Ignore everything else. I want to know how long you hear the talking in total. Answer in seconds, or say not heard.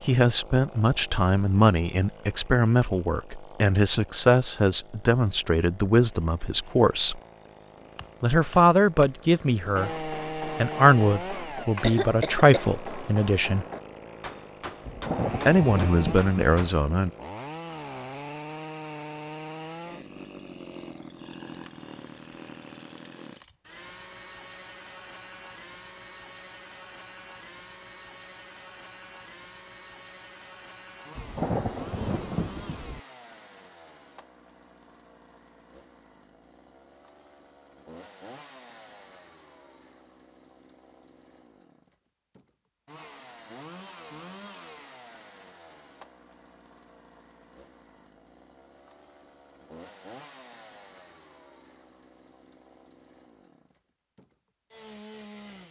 14 s.